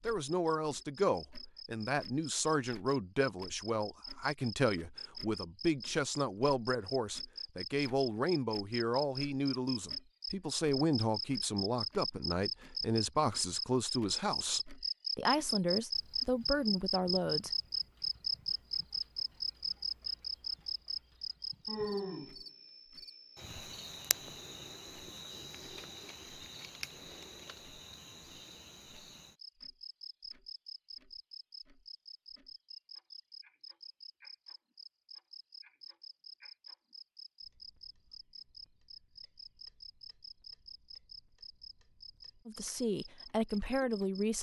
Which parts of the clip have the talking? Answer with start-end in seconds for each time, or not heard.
0.0-17.5, 42.5-44.3.